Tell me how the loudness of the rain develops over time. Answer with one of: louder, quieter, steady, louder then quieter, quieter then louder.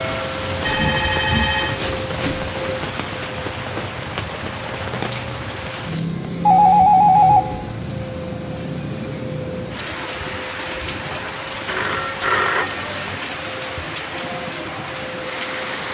steady.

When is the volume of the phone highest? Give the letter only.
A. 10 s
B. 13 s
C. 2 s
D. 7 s
D.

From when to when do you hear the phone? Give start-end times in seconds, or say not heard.
0.7-2.5, 6.5-7.8, 11.7-13.2.